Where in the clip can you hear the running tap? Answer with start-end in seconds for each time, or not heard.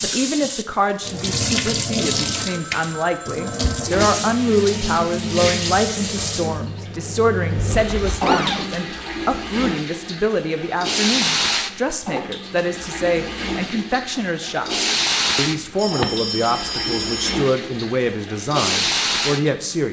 0.0-19.8.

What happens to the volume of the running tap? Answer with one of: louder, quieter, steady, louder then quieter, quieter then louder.
steady.